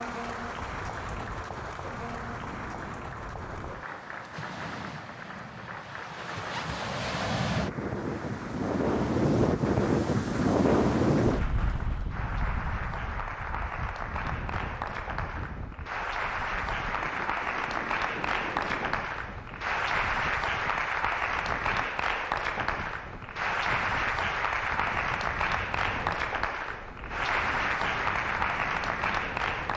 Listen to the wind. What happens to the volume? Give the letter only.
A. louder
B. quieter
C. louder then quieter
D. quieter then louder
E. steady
C.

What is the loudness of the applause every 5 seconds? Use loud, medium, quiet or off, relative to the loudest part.
medium, quiet, medium, loud, loud, loud.